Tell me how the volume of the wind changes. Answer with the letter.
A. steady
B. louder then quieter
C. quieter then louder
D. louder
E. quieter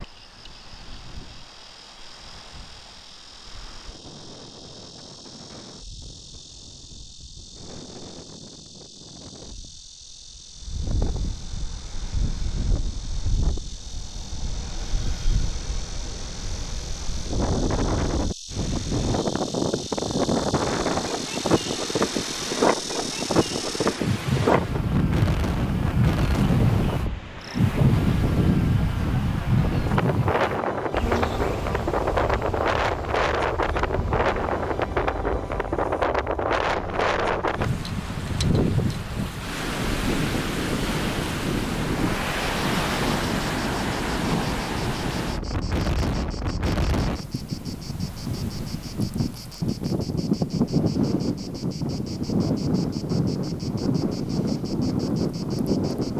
D.